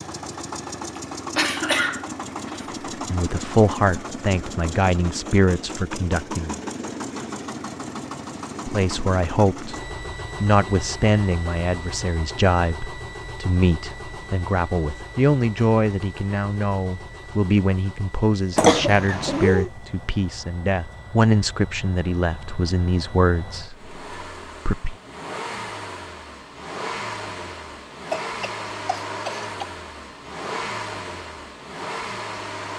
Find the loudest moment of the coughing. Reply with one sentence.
The loudest moment of the coughing is at 19 seconds.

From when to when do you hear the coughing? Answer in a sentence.
The coughing can be heard from 0.9 to 2.6 s, from 18.6 to 19.7 s and from 28.1 to 29.6 s.